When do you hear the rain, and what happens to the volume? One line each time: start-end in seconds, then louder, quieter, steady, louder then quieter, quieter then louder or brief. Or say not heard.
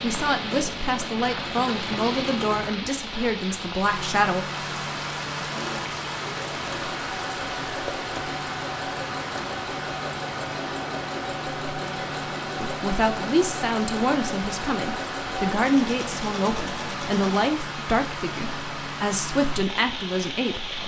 0.0-20.8 steady.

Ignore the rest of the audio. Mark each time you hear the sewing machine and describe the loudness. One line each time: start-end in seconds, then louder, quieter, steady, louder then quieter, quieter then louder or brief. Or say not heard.
0.0-2.8 brief
5.5-17.5 steady.